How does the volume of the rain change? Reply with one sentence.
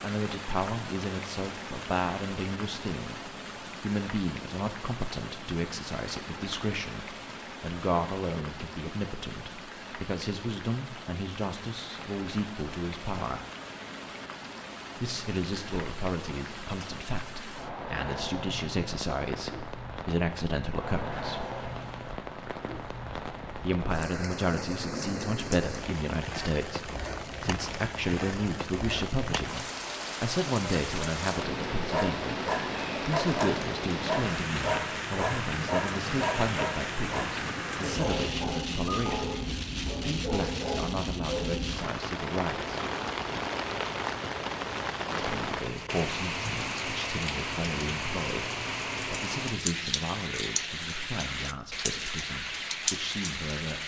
The loudness of the rain goes up.